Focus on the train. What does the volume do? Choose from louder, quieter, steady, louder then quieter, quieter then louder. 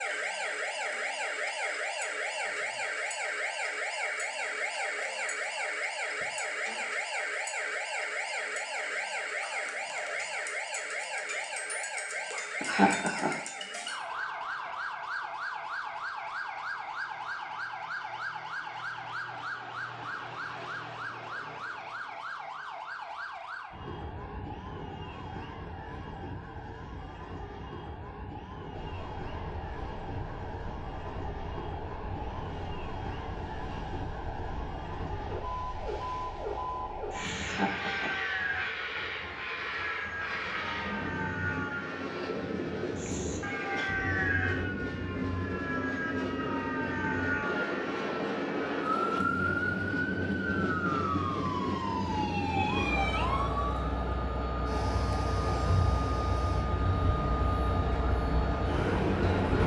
louder.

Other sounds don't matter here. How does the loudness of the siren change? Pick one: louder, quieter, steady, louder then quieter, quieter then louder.
quieter then louder.